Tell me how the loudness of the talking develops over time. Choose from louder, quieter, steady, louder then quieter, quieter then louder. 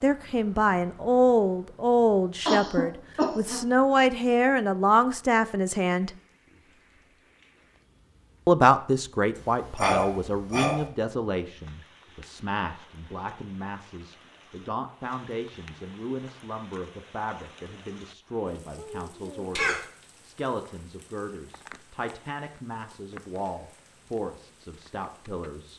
quieter.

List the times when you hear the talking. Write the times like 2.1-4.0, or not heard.
0.0-6.1, 8.4-25.7.